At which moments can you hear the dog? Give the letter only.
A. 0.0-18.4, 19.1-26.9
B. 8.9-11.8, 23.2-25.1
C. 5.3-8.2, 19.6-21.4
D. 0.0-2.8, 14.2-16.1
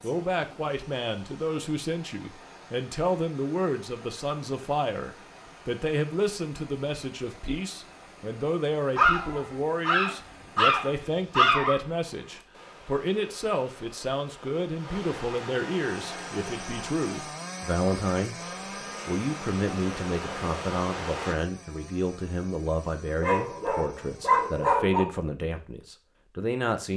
B.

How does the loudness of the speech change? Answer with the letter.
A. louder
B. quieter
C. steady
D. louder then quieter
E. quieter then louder
C.